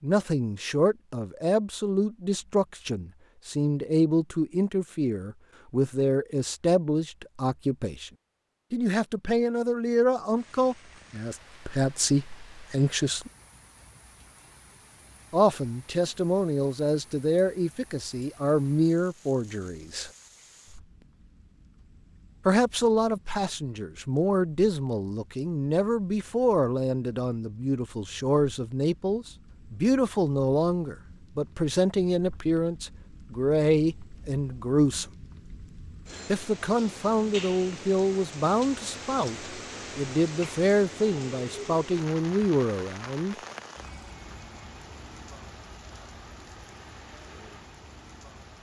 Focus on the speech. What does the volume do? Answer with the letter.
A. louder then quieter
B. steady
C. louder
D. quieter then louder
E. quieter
B.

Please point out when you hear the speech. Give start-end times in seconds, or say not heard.
0.0-8.1, 8.7-13.3, 15.3-20.1, 22.4-35.0, 36.2-43.4.